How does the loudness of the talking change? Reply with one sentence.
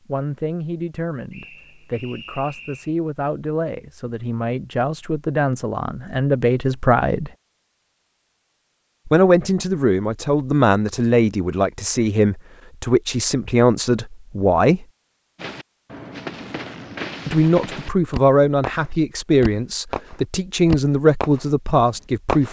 The loudness of the talking goes up.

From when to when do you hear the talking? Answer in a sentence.
The talking can be heard from 0.1 to 7.3 s, from 9.1 to 14.8 s and from 17.2 to 22.4 s.